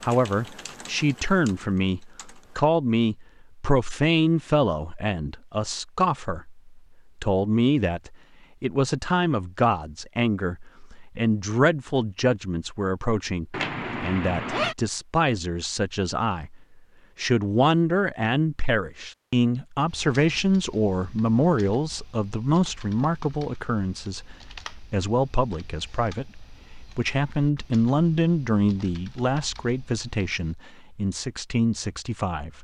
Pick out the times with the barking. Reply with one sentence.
The barking can't be heard in this clip.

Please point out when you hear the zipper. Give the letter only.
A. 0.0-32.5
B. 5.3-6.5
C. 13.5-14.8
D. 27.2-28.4
C.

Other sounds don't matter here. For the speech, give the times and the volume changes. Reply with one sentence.
The speech can be heard from 0.0 to 32.5 s, at a steady volume.